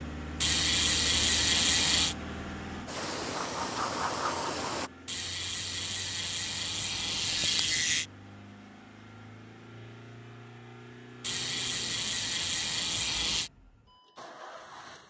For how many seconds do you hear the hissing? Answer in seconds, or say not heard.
2 s.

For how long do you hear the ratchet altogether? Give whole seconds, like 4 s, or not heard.
7 s.